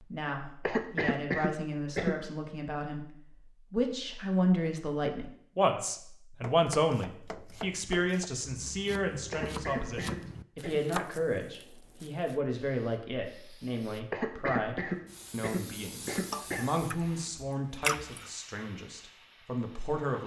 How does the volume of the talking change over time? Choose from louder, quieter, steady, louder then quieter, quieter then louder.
louder then quieter.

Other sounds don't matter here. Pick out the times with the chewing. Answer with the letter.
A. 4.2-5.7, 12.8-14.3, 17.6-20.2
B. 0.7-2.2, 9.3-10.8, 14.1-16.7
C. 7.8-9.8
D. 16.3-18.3
D.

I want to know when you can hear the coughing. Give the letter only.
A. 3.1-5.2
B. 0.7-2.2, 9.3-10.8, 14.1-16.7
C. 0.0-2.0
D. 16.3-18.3
B.